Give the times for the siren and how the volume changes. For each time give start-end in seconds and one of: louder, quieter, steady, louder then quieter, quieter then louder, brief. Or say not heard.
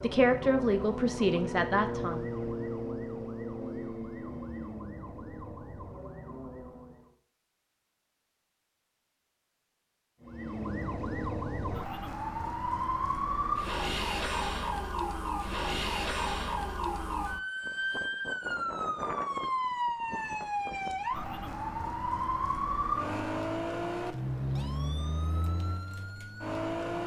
0.0-7.2 quieter
10.2-27.0 steady.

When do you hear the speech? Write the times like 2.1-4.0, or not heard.
0.0-2.2.